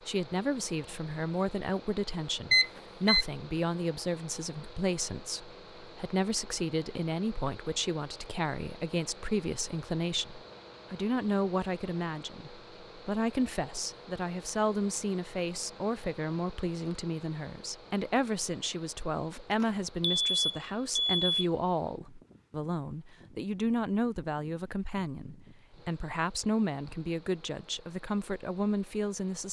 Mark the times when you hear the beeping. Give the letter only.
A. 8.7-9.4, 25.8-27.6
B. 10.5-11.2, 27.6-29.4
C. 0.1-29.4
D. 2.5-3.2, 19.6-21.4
D.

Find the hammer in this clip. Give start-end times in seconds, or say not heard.
not heard.